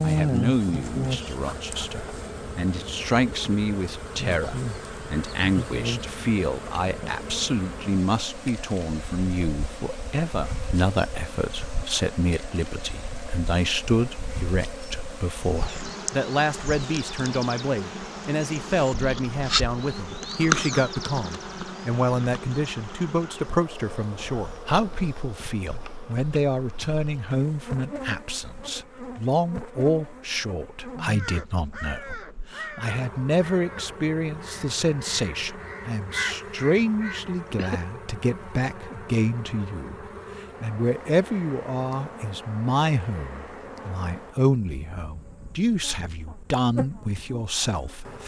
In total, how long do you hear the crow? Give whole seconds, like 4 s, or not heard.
7 s.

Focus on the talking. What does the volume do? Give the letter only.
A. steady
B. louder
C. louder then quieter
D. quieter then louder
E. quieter
A.